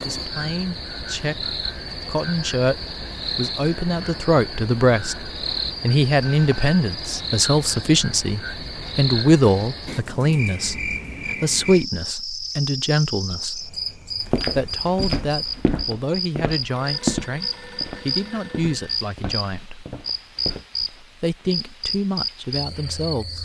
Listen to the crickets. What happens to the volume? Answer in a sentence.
The volume of the crickets stays about the same.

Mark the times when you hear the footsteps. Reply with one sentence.
The footsteps can be heard from 14.2 to 20.6 s.